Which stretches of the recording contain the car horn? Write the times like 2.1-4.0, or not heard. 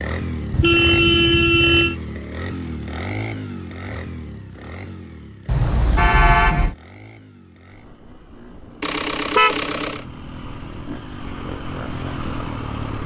0.5-1.9, 5.5-6.8, 8.8-10.1.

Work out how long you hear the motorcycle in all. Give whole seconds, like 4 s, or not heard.
13 s.